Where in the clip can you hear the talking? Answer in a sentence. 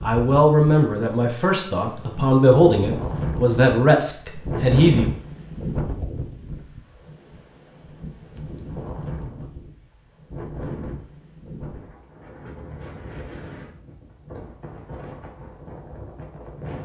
The talking can be heard from 0.0 to 5.1 s.